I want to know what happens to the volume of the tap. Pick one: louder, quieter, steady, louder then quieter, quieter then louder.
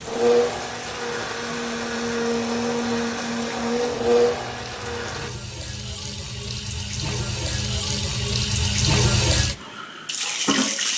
louder.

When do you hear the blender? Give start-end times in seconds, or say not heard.
0.0-5.3.